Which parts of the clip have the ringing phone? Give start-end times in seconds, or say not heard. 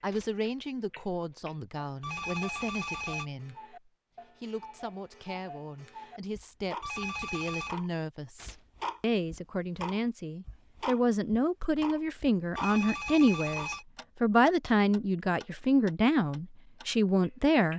2.0-3.3, 6.8-7.8, 12.6-13.8.